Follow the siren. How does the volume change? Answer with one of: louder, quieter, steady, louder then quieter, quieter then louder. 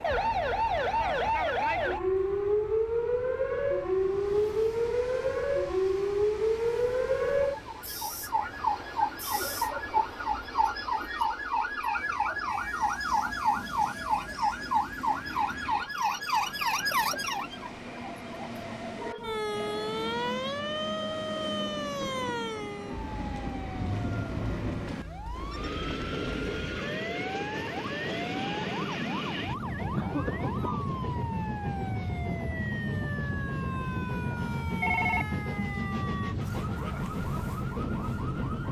quieter.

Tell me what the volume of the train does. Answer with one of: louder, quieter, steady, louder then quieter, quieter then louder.
louder.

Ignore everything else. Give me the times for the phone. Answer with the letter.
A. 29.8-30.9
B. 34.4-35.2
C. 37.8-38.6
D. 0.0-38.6
B.